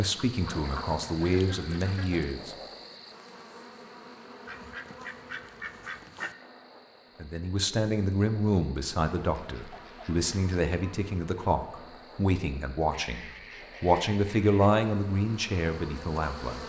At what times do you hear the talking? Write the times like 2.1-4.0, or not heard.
0.0-2.5, 7.2-16.6.